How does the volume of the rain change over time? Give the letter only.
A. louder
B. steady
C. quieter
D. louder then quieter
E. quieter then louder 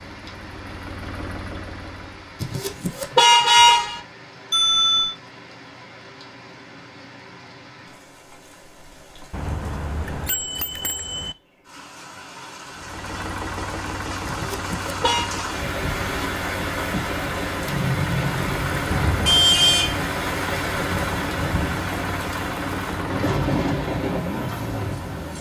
A.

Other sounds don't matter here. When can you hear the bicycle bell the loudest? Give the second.
5 s.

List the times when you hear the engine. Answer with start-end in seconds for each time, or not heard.
0.0-2.4, 12.7-25.3.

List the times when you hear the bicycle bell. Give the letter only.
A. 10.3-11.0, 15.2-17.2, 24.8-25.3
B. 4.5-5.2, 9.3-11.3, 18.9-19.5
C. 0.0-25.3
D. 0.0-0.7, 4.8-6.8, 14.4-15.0
B.